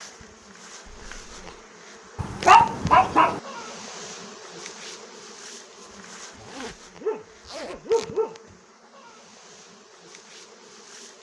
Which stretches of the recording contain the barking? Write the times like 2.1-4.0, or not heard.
2.1-3.4, 7.0-8.4.